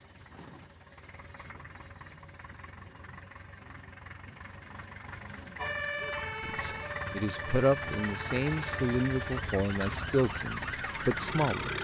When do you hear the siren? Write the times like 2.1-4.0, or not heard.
5.5-11.6.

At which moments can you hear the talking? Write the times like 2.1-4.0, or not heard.
6.4-11.7.